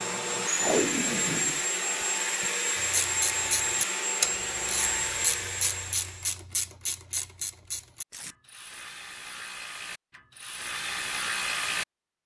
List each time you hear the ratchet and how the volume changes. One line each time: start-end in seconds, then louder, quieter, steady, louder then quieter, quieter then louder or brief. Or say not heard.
2.8-11.8 quieter then louder.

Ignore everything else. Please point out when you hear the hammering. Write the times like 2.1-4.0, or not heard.
not heard.